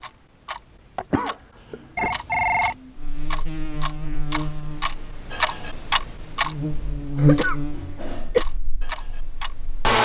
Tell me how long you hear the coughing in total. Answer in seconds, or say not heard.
2 s.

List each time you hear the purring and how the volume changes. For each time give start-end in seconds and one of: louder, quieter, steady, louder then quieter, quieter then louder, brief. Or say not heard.
not heard.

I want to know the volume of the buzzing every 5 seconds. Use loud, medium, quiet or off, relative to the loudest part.
medium, loud.